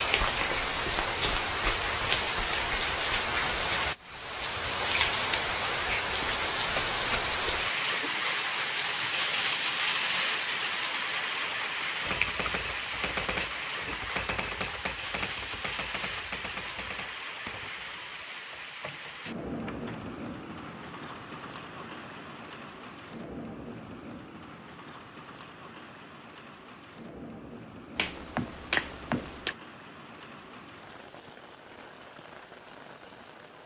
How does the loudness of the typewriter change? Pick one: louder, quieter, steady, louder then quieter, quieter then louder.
quieter.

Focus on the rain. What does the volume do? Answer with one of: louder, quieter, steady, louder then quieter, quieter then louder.
quieter.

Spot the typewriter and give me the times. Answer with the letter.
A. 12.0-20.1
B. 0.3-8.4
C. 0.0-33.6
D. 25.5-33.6
A.